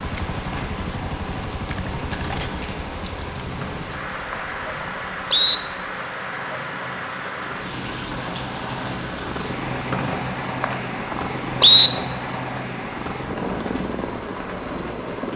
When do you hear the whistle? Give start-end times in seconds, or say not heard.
3.6-5.5, 9.9-11.9.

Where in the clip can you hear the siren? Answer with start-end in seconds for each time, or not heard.
not heard.